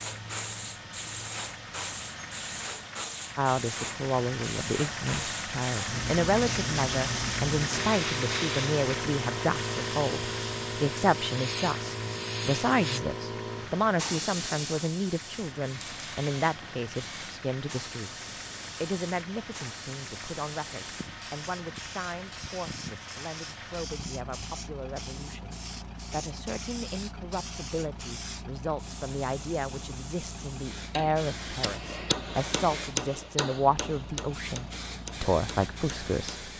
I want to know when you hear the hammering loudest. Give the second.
33 s.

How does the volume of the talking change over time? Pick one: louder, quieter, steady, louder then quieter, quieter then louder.
quieter then louder.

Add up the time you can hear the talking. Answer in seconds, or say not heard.
33 s.